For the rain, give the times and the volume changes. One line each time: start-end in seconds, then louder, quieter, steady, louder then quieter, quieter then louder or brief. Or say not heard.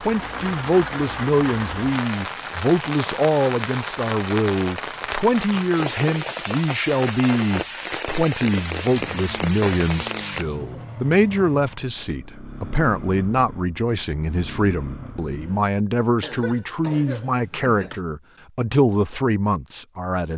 0.0-10.4 steady.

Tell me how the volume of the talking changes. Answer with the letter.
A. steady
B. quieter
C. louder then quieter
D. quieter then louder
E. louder
A.